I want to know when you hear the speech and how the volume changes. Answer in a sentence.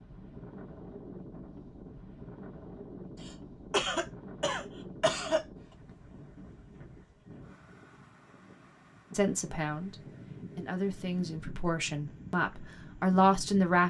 The speech can be heard from 9.1 to 13.8 s, getting louder.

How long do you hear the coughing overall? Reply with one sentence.
The coughing can be heard for 2 seconds in total.